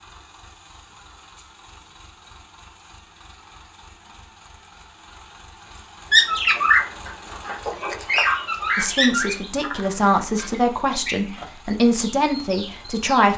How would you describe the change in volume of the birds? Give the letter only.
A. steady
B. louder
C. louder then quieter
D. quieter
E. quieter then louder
D.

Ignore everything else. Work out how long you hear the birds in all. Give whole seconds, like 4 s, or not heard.
7 s.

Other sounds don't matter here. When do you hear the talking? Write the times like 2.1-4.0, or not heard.
8.8-13.3.